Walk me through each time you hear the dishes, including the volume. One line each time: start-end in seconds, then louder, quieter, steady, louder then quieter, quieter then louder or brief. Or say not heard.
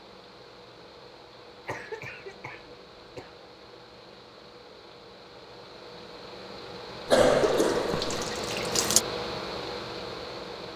not heard.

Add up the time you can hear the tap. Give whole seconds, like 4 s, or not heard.
2 s.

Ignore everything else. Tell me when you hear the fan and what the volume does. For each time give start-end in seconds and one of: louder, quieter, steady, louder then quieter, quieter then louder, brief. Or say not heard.
0.0-10.7 louder.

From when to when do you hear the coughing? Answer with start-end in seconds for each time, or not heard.
1.6-3.3, 7.0-8.3.